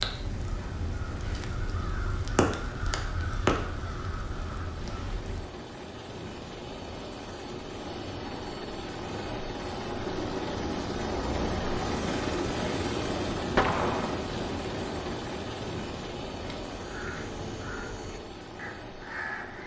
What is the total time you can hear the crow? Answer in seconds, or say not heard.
9 s.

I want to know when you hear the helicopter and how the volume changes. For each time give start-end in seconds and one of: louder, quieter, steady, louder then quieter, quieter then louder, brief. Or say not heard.
0.0-19.6 louder then quieter.